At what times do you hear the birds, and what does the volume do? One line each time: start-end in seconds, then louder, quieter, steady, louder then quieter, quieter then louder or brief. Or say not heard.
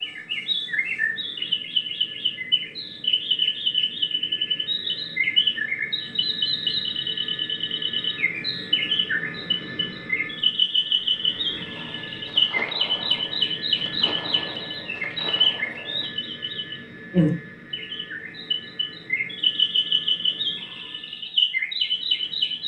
0.0-22.6 steady.